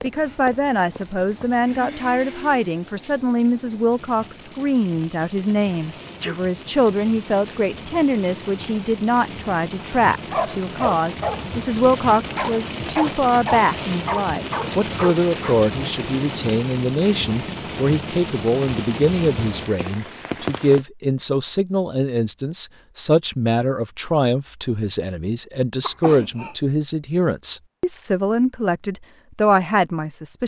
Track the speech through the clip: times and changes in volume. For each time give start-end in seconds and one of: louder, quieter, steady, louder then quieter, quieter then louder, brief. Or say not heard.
0.0-30.4 steady.